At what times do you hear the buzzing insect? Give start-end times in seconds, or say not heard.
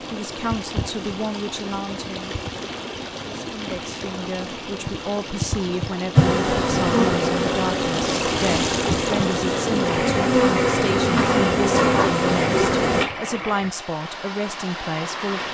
6.2-13.1.